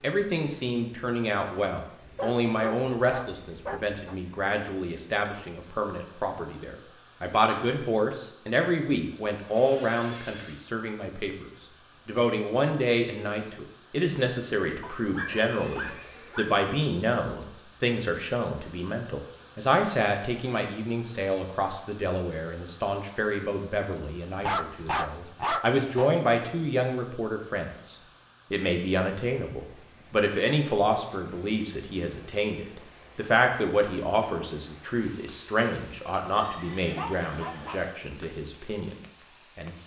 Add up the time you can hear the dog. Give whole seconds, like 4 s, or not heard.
6 s.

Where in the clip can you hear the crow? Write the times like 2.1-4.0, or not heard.
not heard.